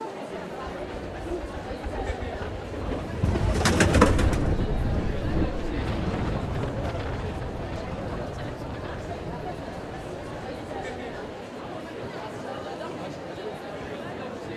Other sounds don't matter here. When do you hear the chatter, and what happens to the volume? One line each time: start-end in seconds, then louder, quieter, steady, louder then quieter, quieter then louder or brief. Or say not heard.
0.0-14.5 steady.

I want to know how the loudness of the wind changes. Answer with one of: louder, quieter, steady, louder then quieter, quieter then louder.
quieter.